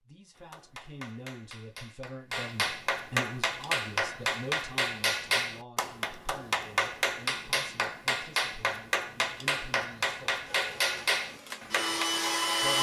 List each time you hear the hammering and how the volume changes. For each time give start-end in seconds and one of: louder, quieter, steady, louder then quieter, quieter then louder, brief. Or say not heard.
0.3-12.1 louder.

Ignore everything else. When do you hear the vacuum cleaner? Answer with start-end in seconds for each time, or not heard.
10.4-12.7.